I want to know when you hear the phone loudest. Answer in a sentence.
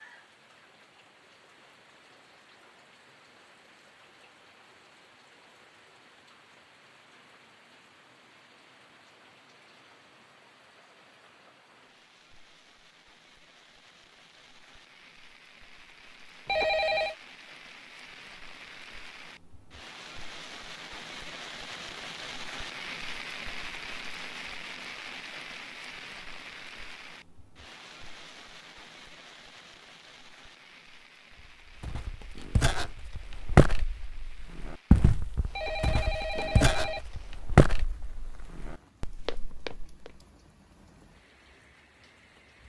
The volume of the phone peaks at 17 seconds.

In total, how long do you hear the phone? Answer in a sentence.
The phone can be heard for 2 seconds in total.